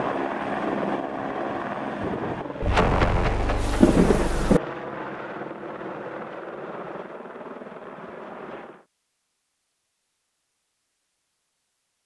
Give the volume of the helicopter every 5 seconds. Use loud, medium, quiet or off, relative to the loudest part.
loud, medium, off.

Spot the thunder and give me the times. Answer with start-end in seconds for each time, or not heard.
2.6-4.6.